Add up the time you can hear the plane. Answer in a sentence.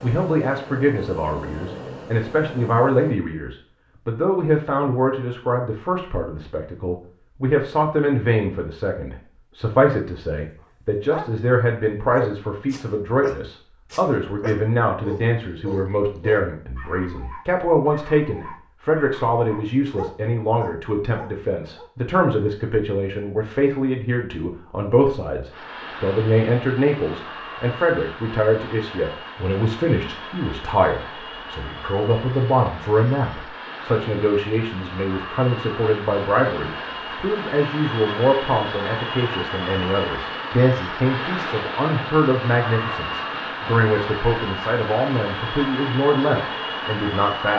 You can hear the plane for 25 seconds altogether.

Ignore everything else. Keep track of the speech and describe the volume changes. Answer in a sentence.
The loudness of the speech stays about the same.